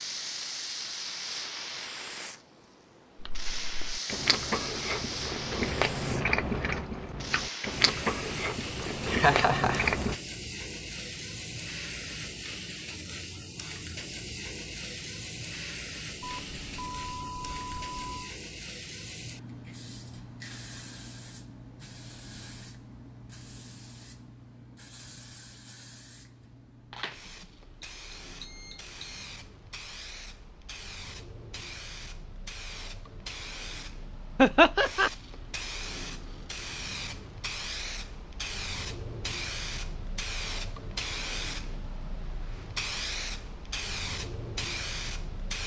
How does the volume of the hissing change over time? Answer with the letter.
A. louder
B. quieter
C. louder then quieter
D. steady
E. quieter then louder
E.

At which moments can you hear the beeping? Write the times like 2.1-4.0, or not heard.
16.2-18.4, 27.2-29.2.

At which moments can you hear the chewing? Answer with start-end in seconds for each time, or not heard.
3.2-10.2.